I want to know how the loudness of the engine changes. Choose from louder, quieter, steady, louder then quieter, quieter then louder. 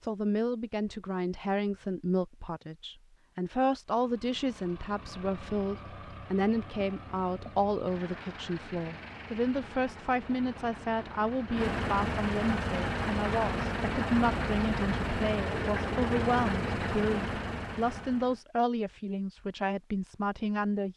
louder.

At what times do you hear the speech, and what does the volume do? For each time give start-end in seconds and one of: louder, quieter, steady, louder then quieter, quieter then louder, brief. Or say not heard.
0.0-20.9 steady.